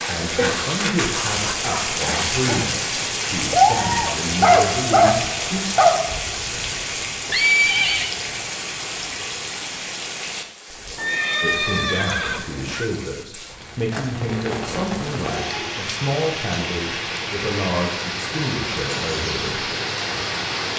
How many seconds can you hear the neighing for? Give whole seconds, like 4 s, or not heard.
3 s.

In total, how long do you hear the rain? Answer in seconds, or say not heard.
21 s.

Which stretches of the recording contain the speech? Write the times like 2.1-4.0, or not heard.
0.1-5.6, 11.4-19.7.